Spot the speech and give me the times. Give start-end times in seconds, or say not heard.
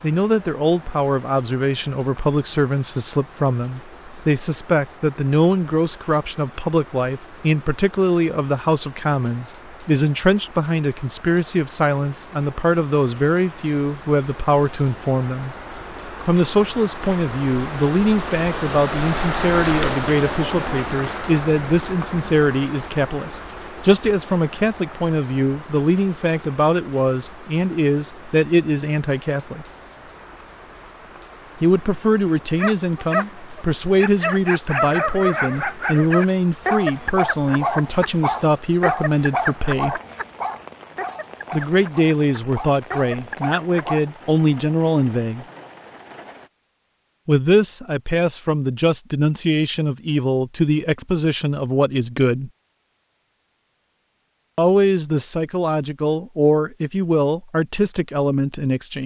0.0-15.6, 16.2-29.6, 31.6-40.0, 41.5-45.5, 47.2-52.5, 54.5-59.0.